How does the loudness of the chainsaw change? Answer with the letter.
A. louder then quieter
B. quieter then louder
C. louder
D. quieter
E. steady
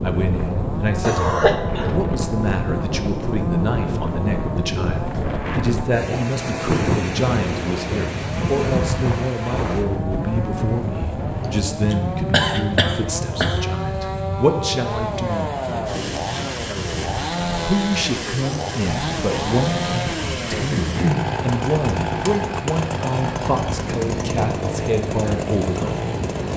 C.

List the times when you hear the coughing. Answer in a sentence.
The coughing can be heard from 1.0 to 2.0 s, from 11.4 to 13.6 s and from 20.5 to 21.3 s.